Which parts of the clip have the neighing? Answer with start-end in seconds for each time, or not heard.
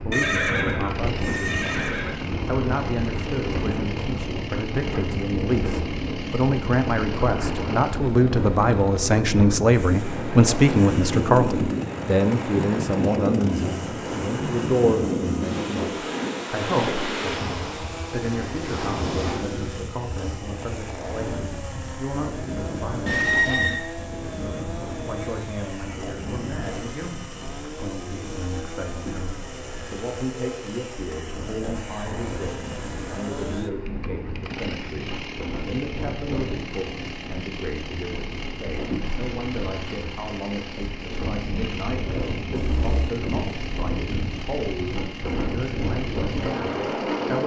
0.1-2.1, 23.1-23.8, 42.5-43.1.